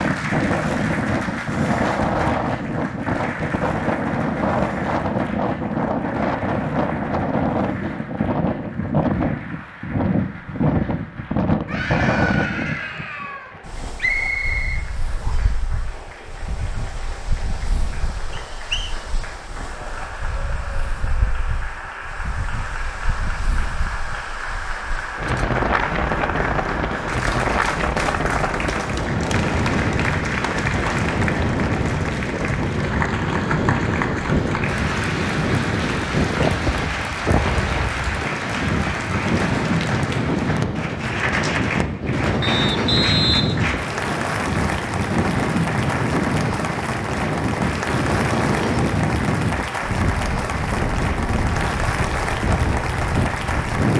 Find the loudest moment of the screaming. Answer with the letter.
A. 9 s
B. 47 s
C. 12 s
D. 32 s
C.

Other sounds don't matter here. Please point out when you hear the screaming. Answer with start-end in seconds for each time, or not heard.
11.7-13.5.